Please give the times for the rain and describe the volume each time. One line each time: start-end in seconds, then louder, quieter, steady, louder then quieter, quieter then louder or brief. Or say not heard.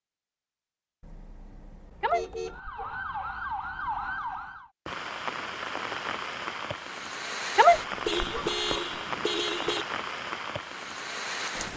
4.8-11.7 steady.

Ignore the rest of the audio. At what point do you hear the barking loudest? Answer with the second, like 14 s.
8 s.